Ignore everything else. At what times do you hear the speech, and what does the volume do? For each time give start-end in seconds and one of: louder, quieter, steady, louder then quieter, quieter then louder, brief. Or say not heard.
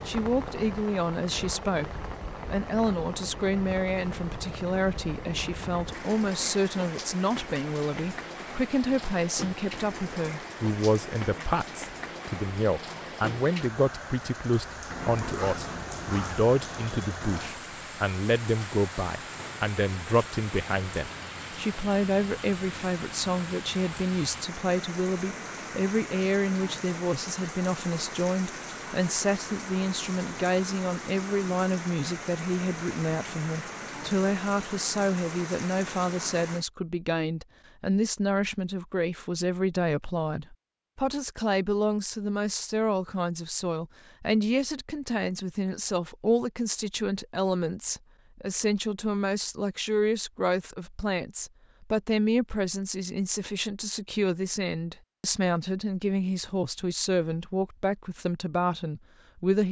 0.1-59.6 steady.